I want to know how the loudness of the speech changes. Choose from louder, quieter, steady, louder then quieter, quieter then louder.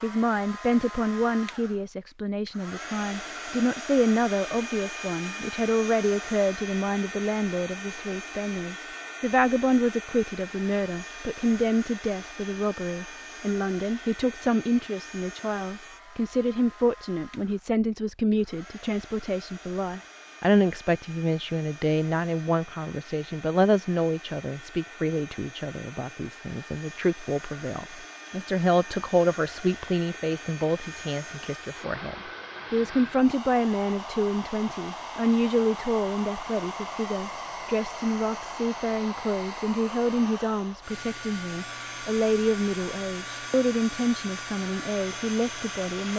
steady.